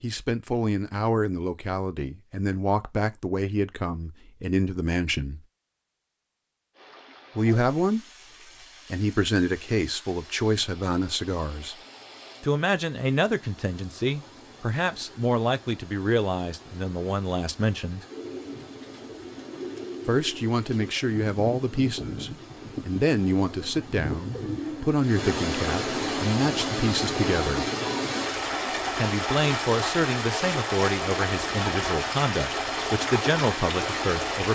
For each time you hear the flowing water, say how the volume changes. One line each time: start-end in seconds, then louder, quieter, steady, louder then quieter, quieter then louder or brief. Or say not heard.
6.7-34.5 louder.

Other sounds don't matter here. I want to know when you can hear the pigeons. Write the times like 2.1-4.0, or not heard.
18.1-25.3.